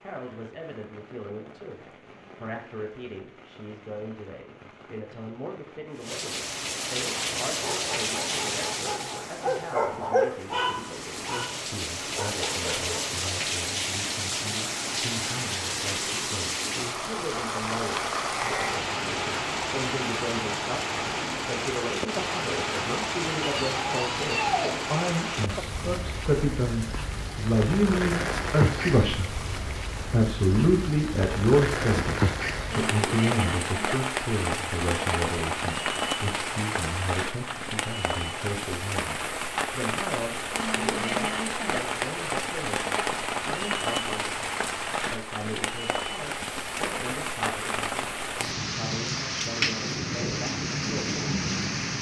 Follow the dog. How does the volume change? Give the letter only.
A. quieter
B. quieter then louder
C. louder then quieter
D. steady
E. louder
C.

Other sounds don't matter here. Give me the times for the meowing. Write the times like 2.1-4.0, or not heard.
23.4-24.8.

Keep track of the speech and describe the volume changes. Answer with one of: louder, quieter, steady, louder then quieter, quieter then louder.
louder then quieter.